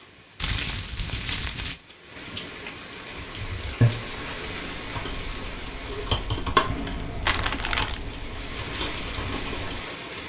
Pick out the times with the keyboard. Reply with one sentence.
You can hear the keyboard from 3.1 to 9.8 s.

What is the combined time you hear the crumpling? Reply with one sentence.
The crumpling can be heard for 2 seconds in total.